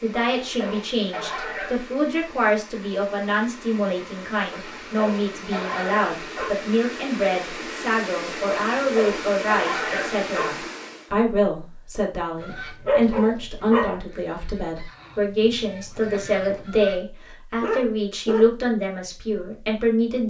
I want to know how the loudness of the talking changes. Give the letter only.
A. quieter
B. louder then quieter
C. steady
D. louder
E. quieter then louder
C.